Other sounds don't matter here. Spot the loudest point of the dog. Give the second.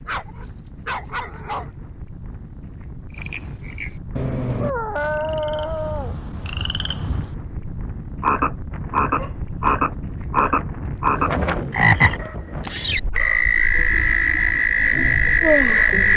5 s.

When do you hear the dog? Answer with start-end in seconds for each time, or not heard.
0.1-1.7, 4.6-6.2, 9.1-10.6, 12.2-13.7.